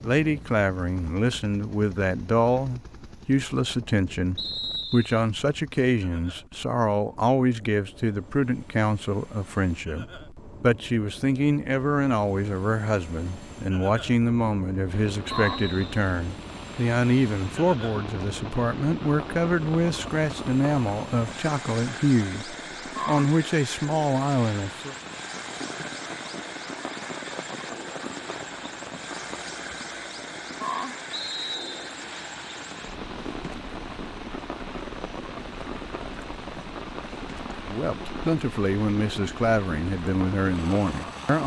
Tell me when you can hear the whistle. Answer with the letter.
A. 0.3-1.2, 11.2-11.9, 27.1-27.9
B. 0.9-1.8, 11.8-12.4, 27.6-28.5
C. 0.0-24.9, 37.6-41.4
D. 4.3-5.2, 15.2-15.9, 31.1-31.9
D.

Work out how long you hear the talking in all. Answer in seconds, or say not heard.
29 s.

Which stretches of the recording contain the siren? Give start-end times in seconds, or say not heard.
not heard.